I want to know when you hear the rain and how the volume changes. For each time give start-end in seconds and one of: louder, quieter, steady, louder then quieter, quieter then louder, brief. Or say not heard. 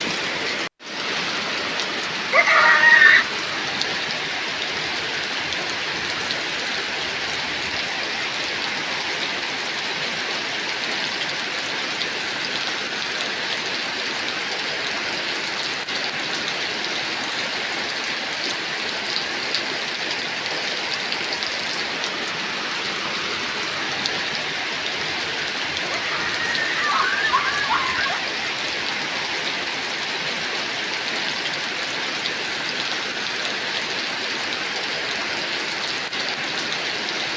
0.0-37.3 steady.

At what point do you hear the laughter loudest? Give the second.
3 s.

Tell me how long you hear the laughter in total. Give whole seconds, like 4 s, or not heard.
3 s.